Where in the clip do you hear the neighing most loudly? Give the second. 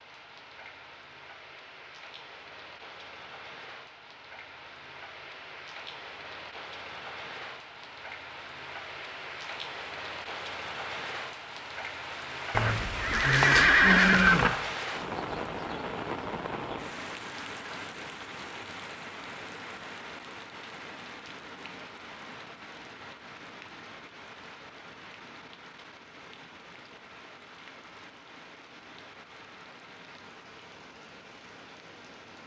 14 s.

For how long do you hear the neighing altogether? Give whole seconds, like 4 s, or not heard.
2 s.